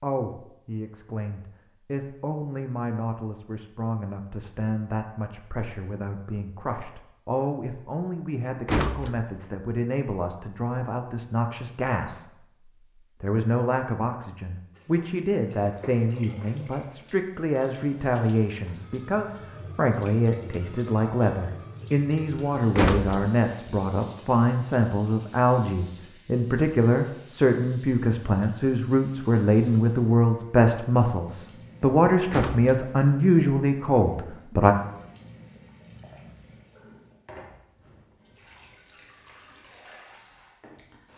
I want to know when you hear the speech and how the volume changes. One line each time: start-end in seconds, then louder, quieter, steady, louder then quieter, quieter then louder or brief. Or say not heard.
0.0-34.8 louder.